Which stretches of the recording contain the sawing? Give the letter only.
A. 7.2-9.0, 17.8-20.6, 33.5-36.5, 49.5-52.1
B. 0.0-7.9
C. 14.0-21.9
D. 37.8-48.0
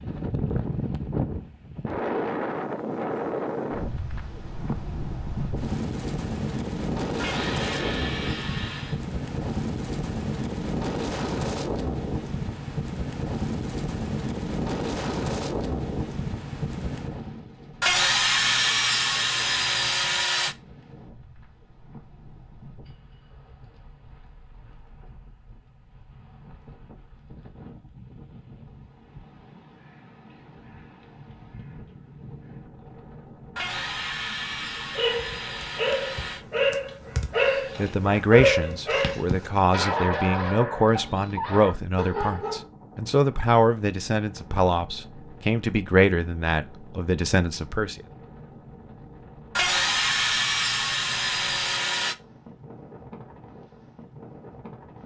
A.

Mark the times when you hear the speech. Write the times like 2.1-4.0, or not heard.
37.8-48.0.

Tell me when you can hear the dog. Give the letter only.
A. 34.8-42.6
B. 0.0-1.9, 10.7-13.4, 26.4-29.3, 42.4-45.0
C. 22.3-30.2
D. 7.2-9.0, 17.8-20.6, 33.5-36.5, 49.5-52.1
A.